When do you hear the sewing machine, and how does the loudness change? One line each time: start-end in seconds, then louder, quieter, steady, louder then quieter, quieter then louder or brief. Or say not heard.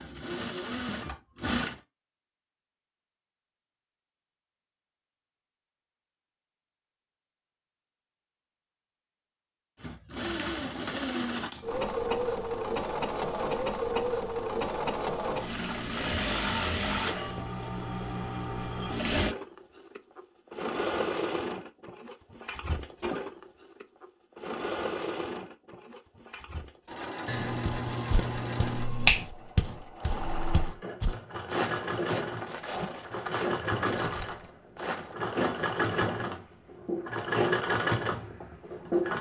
0.0-1.8 brief
9.8-39.1 quieter then louder.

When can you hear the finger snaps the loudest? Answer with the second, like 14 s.
29 s.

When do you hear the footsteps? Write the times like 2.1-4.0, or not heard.
27.6-36.3.